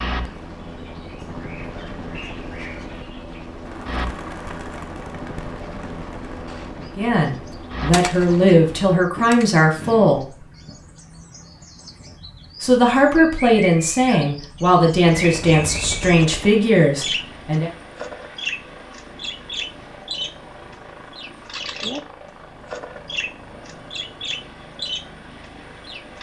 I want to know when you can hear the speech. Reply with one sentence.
You can hear the speech from 7.0 to 10.4 s and from 12.6 to 17.7 s.